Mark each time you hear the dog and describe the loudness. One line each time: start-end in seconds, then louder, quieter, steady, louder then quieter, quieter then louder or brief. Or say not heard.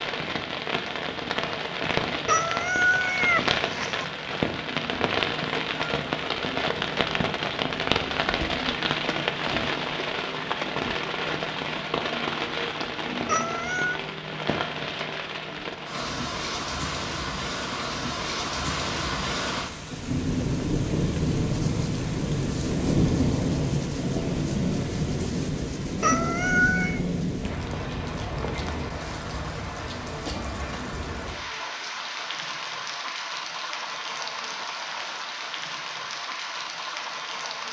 not heard.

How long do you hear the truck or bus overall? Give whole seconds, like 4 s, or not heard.
not heard.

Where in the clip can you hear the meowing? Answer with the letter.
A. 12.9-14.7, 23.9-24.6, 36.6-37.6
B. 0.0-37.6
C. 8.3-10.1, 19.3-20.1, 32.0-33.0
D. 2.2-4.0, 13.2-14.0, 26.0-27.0
D.